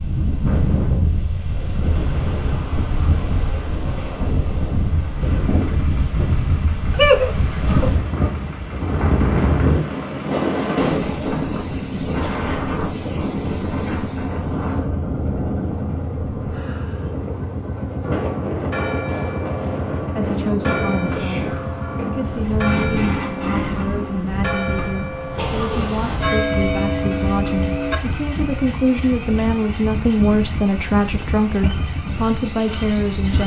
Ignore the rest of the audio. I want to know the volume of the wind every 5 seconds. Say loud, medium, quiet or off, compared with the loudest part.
loud, loud, loud, medium, medium, medium, medium.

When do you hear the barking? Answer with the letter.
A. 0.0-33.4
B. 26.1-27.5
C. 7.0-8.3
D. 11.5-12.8
C.